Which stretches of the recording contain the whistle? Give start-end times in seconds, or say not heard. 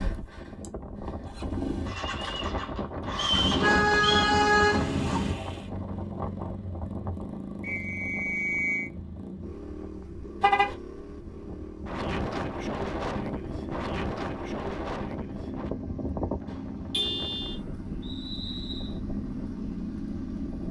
3.1-4.3, 7.6-8.9, 18.0-19.0.